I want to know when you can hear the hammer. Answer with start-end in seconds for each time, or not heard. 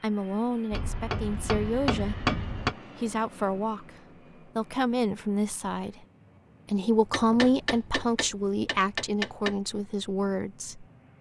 0.7-2.8, 7.0-9.6.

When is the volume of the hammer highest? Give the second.
2 s.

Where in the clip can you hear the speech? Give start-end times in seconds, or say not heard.
0.0-6.0, 6.7-10.8.